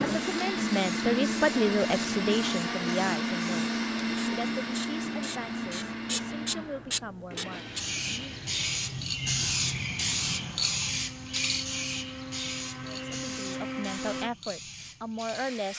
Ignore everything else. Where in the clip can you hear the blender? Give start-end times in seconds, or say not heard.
0.0-14.3.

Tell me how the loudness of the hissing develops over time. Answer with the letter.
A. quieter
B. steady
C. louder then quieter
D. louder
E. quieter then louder
C.